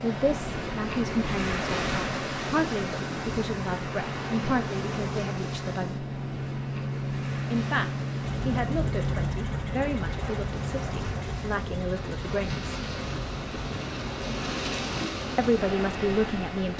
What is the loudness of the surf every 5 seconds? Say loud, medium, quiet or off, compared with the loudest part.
loud, medium, loud, loud.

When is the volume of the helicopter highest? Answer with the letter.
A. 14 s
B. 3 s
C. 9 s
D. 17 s
C.